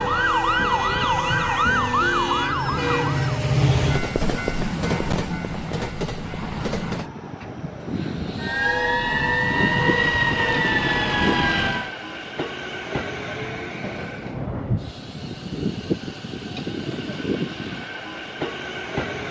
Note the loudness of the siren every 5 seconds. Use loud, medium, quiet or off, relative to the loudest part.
loud, loud, loud, off.